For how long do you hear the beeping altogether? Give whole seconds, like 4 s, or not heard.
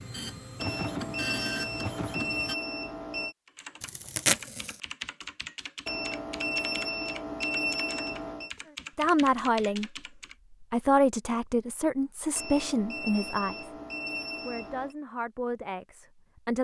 8 s.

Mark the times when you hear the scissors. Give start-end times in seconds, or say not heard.
not heard.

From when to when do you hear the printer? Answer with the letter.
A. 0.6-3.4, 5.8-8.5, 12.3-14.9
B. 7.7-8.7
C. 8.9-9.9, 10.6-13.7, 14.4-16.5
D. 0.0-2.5
D.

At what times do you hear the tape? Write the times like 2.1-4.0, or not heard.
3.8-4.8.